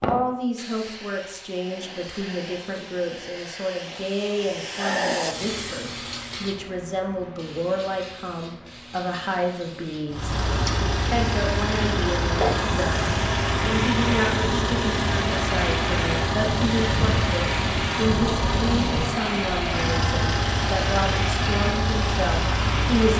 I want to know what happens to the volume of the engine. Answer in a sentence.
The loudness of the engine stays about the same.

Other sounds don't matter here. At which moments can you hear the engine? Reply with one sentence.
You can hear the engine from 10.1 to 23.1 s.